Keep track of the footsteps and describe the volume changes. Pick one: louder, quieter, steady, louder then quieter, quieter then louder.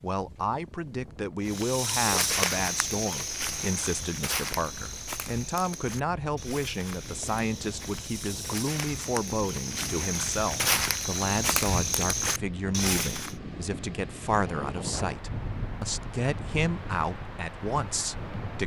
quieter then louder.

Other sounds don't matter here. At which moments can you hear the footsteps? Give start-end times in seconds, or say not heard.
1.4-13.3.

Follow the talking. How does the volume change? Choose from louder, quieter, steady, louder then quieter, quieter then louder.
steady.